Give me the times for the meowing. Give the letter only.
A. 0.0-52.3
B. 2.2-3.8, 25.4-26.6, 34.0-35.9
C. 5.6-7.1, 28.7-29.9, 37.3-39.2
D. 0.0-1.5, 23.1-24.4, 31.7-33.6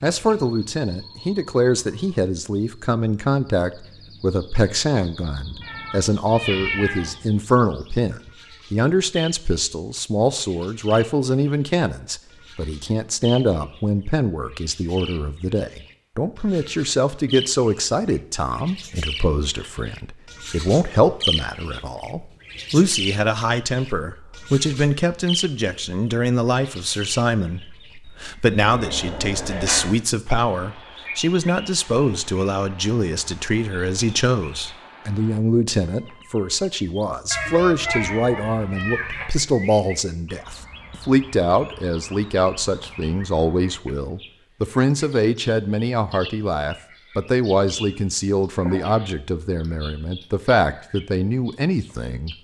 C.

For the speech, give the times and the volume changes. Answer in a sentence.
The speech can be heard from 0.0 to 52.3 s, at a steady volume.